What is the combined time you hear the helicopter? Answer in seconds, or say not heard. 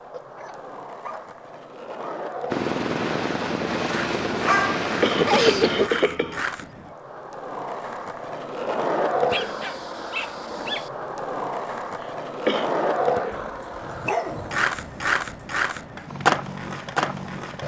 5 s.